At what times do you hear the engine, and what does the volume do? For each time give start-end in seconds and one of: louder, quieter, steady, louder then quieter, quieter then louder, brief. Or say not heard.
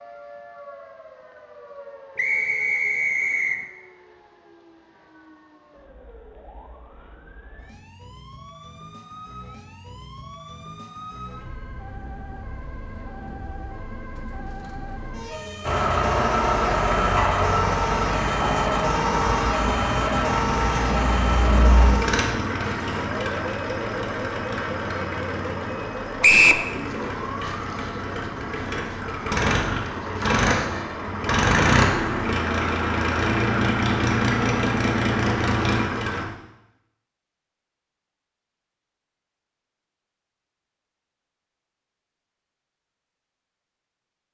15.6-36.2 quieter then louder.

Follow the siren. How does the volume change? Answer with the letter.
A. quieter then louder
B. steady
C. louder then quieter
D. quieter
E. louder
C.